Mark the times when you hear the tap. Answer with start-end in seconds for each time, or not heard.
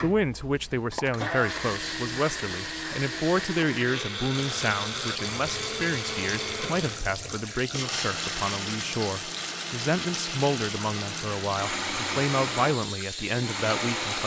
4.3-14.2.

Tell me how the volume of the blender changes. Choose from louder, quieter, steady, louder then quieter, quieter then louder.
steady.